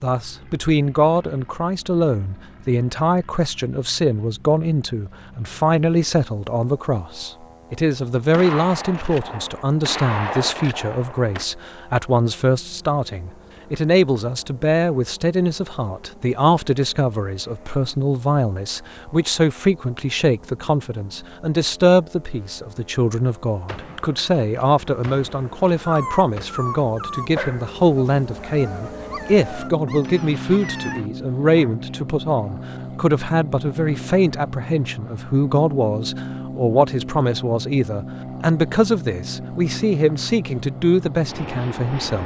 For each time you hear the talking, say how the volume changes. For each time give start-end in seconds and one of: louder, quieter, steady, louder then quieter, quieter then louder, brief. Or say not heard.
0.0-42.2 steady.